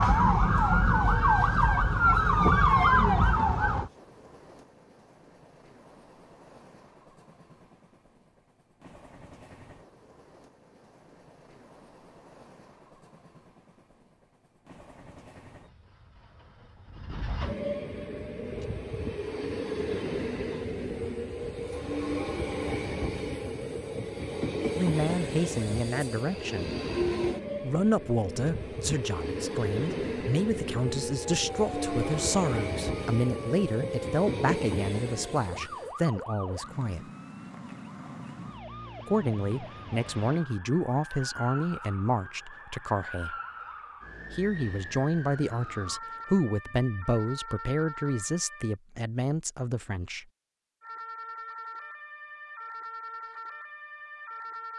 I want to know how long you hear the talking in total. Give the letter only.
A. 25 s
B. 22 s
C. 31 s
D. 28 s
B.